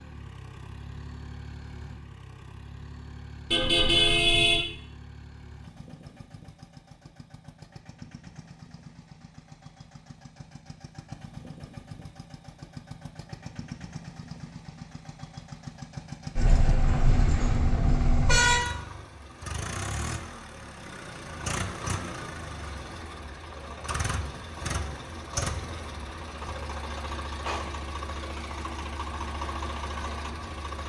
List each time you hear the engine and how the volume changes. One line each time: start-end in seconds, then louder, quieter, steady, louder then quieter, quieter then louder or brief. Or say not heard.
0.0-30.8 louder.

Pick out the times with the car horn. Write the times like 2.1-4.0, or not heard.
3.5-4.6, 16.4-18.6.